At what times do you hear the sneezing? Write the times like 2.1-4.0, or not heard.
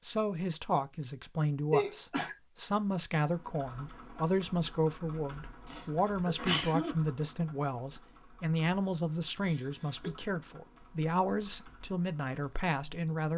1.7-2.4, 5.7-7.0, 9.4-10.1.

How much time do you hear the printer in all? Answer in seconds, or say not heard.
not heard.